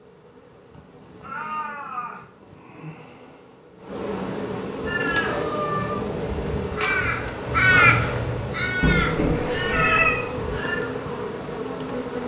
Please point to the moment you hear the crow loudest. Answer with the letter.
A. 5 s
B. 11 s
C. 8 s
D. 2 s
C.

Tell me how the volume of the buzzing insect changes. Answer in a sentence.
The volume of the buzzing insect goes up.